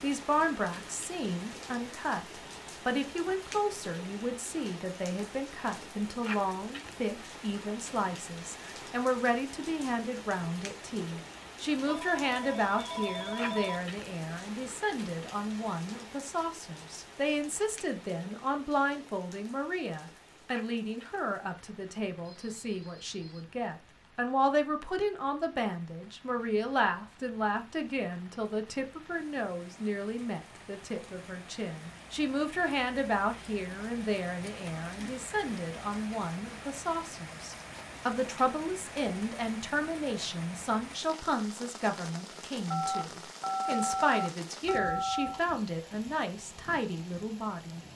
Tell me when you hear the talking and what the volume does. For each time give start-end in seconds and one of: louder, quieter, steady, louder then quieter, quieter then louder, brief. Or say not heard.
0.0-47.9 steady.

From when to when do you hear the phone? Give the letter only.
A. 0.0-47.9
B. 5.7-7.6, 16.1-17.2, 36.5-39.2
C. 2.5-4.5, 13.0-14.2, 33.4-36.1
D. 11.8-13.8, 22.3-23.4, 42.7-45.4
D.